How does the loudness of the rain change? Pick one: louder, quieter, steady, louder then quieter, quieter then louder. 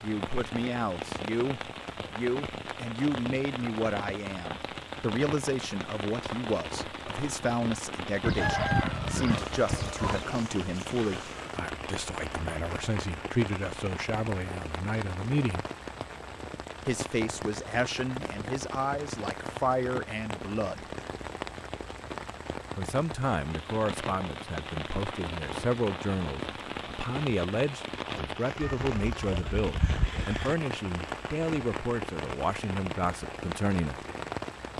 steady.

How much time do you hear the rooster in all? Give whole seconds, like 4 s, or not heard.
4 s.